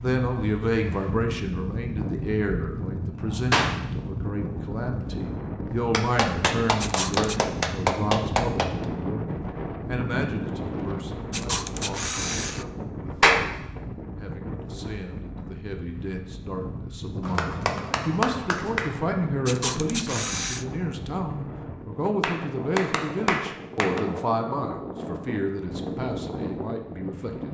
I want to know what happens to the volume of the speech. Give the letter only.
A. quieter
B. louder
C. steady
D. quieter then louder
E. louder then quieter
D.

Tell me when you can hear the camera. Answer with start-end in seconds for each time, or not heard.
6.8-7.4, 11.3-12.7, 19.4-20.6.